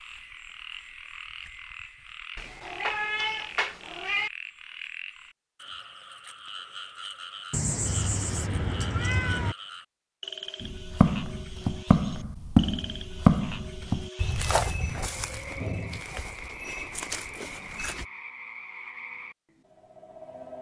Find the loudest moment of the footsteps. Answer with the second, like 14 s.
13 s.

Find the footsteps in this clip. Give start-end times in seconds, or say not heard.
10.6-18.1.